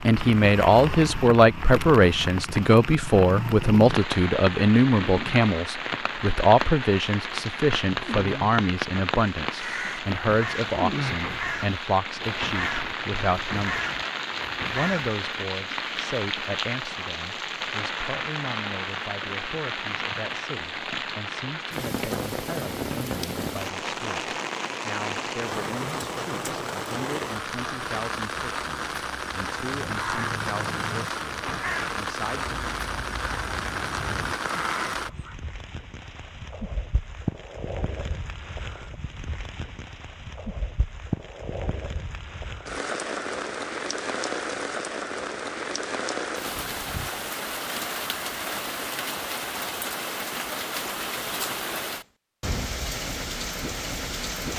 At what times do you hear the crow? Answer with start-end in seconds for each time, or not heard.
9.5-15.2, 29.8-35.4.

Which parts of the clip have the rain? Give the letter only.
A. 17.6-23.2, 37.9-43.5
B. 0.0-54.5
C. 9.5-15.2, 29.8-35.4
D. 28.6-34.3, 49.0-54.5
B.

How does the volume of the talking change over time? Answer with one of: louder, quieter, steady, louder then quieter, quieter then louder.
quieter.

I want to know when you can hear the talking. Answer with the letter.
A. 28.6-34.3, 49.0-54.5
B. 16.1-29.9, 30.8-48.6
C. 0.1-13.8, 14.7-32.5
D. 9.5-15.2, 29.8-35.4
C.